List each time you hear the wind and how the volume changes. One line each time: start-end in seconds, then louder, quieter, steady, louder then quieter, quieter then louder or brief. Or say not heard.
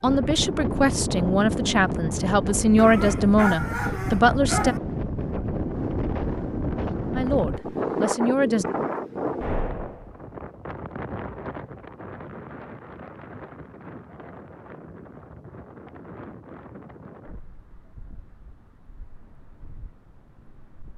0.0-20.9 quieter.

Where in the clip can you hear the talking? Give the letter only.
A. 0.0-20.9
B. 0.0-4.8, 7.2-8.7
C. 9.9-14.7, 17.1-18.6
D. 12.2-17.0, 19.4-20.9
B.